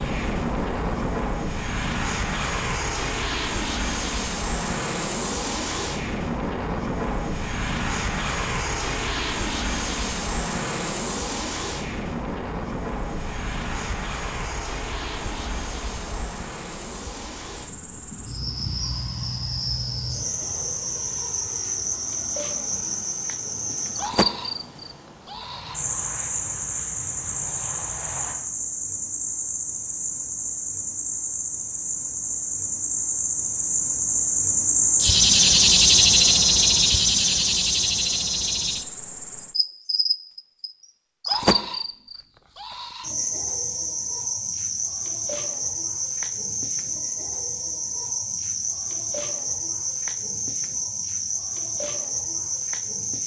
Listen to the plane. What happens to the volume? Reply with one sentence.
The loudness of the plane goes down.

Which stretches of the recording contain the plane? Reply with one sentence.
You can hear the plane from 0.0 to 28.4 s.